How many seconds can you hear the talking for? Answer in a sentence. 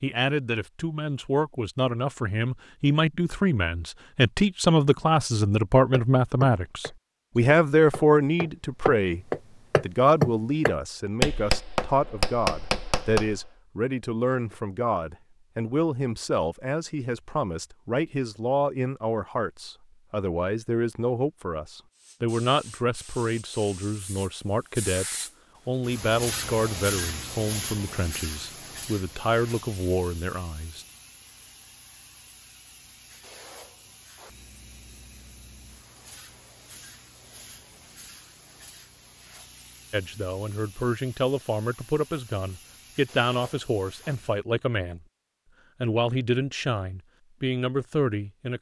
You can hear the talking for 38 seconds altogether.